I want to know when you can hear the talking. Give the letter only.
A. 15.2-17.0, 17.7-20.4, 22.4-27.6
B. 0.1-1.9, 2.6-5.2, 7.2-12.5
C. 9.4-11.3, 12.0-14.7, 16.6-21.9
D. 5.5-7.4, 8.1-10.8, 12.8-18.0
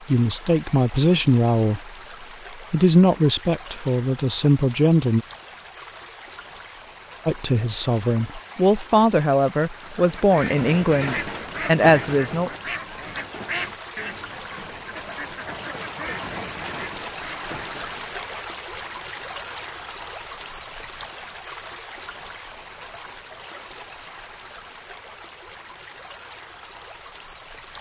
B.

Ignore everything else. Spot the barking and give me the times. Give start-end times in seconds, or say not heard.
not heard.